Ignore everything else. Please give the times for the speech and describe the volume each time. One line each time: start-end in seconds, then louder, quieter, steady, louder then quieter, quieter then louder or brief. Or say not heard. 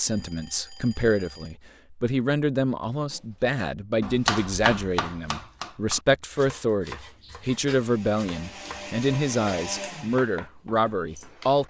0.0-11.6 steady.